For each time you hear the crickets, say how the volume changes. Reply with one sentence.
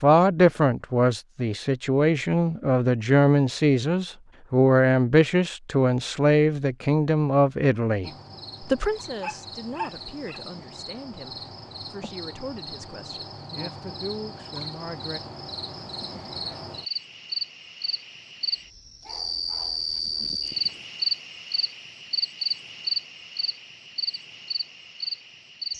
The crickets can be heard from 8.0 to 25.7 s, getting louder.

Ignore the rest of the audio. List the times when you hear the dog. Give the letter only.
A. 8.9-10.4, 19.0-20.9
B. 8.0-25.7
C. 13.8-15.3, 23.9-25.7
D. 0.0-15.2
A.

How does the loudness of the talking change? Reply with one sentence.
The volume of the talking goes down.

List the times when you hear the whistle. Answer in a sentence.
The whistle can't be heard in this clip.